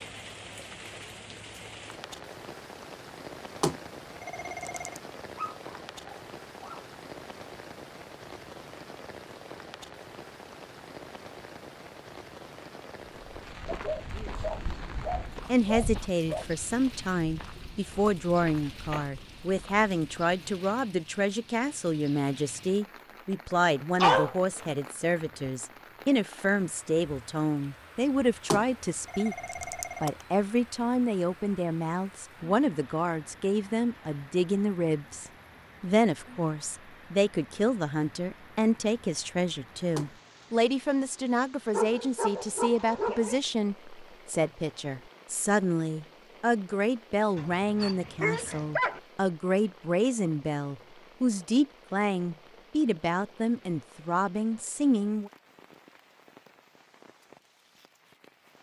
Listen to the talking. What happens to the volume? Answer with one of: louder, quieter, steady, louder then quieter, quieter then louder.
steady.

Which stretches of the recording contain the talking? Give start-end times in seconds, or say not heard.
15.4-29.4, 30.0-55.3.